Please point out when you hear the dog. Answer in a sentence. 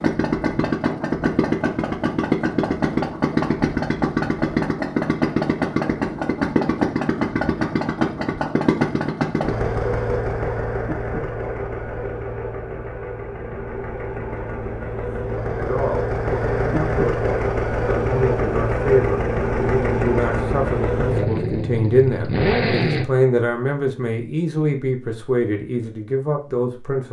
The dog can't be heard in this clip.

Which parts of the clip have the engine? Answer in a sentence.
The engine can be heard from 0.0 to 23.1 s.